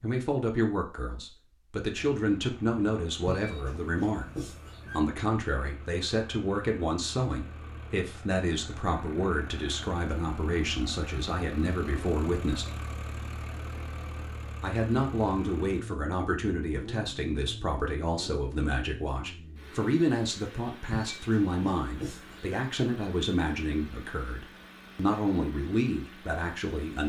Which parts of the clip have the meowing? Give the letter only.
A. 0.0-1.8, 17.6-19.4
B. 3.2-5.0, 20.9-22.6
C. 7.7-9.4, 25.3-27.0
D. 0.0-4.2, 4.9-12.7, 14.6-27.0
B.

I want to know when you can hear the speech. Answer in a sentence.
The speech can be heard from 0.0 to 4.2 s, from 4.9 to 12.7 s and from 14.6 to 27.0 s.